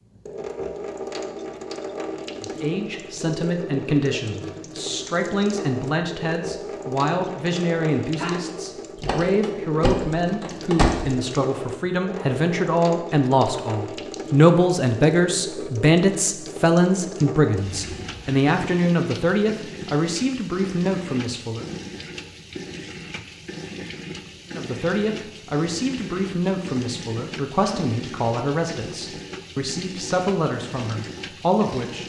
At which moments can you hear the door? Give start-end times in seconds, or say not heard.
8.9-11.1.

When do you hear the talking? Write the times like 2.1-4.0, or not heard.
2.4-21.7, 24.5-32.0.